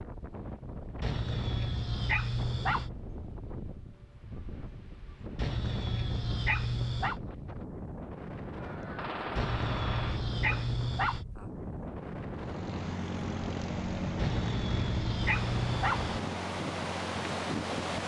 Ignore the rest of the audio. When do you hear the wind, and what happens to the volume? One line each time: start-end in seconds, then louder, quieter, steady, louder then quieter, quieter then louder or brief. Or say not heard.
0.0-18.0 louder.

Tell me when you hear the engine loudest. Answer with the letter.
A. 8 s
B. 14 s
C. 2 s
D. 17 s
B.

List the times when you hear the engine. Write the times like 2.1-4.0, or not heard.
12.3-18.0.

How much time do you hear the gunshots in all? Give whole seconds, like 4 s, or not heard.
2 s.